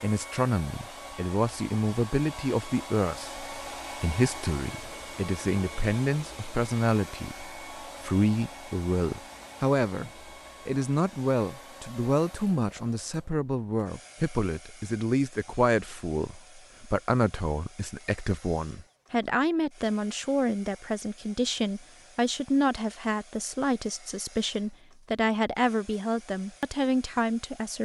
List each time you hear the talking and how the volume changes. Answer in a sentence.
You can hear the talking from 0.0 to 27.7 s, at a steady volume.